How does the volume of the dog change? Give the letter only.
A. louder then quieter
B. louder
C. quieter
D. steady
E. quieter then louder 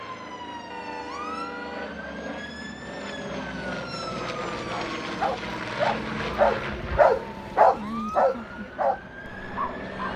A.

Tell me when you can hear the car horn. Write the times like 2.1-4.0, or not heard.
0.7-2.0.